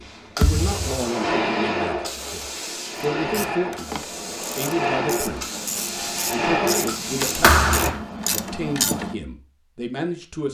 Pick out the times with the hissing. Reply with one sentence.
You can hear the hissing from 0.0 to 7.9 s.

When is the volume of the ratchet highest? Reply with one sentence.
The volume of the ratchet peaks at 9 seconds.